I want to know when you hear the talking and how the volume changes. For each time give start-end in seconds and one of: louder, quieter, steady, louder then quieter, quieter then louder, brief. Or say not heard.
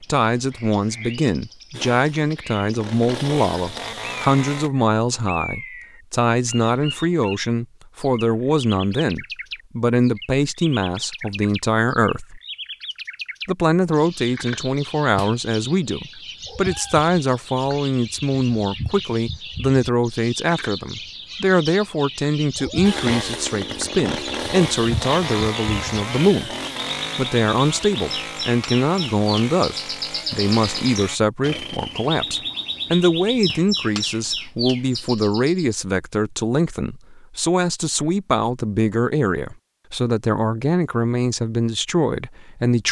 0.0-12.4 steady
13.4-26.5 steady
27.1-42.8 steady.